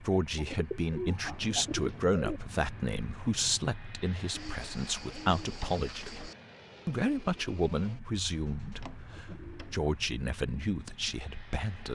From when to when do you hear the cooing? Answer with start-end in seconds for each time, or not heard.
0.3-2.4, 4.3-6.3, 8.2-9.9.